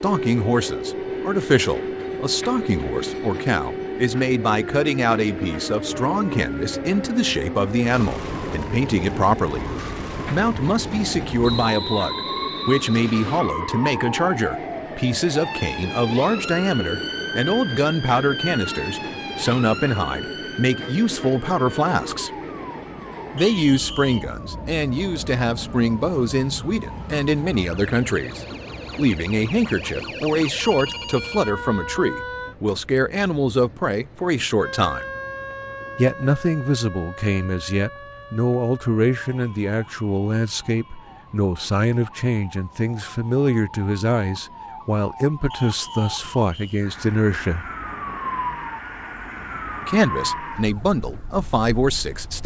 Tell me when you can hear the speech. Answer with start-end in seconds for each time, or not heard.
0.0-9.7, 10.3-22.3, 23.3-35.0, 36.0-47.7, 49.8-52.4.